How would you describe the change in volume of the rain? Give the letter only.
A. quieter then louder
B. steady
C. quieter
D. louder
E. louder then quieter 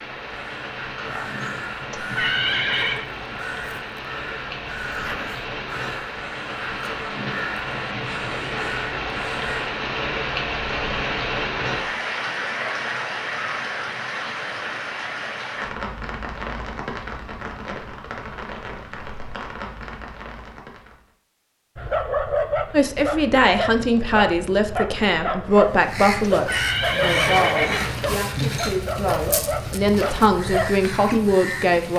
E.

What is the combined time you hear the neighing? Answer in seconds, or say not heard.
3 s.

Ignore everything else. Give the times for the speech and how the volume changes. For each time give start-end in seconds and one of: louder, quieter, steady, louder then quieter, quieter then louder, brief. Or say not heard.
22.7-31.9 quieter then louder.